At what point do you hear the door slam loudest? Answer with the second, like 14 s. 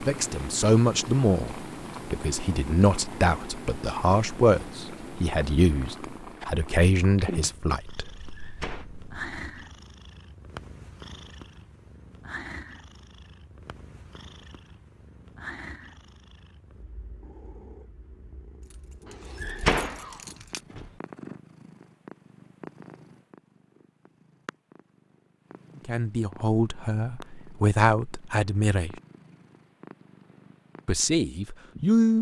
20 s.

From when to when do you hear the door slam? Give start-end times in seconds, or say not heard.
8.3-8.8, 19.4-20.9.